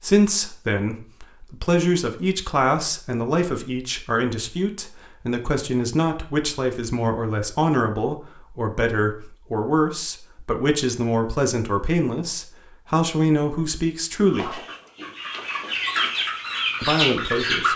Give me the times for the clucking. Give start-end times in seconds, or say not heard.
14.2-17.7.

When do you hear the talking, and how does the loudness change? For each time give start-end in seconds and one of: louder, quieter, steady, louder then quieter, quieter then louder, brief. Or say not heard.
0.0-14.6 steady
16.8-17.7 brief.